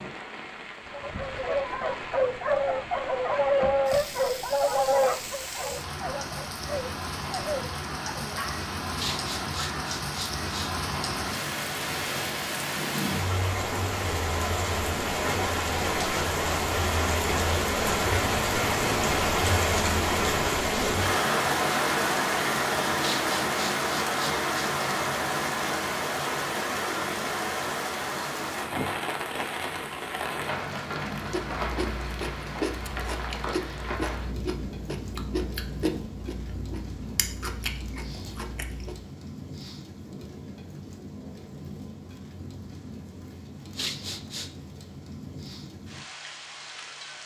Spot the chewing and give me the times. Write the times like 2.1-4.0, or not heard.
31.2-39.0.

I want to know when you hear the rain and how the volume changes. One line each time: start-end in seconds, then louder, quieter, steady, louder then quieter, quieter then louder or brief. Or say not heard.
0.0-47.2 louder then quieter.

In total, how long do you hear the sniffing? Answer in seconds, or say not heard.
4 s.